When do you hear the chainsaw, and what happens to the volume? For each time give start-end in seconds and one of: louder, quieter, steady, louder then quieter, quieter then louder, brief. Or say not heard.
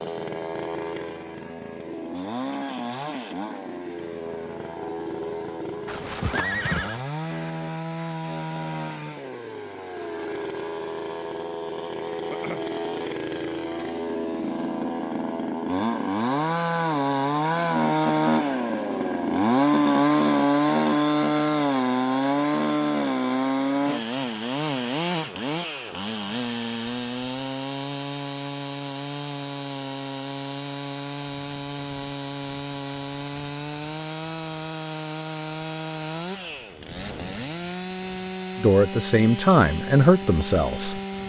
0.0-41.2 louder then quieter.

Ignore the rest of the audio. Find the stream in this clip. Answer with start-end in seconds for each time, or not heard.
not heard.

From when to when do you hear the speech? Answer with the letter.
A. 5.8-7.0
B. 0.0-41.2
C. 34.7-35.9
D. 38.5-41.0
D.